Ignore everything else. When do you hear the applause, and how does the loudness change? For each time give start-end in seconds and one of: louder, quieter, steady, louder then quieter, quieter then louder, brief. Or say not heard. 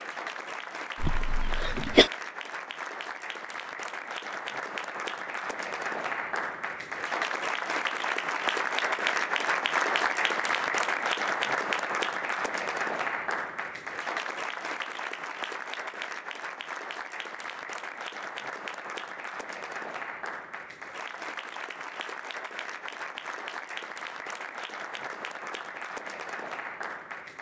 0.0-27.3 louder then quieter.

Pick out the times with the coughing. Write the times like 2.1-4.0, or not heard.
1.0-2.1.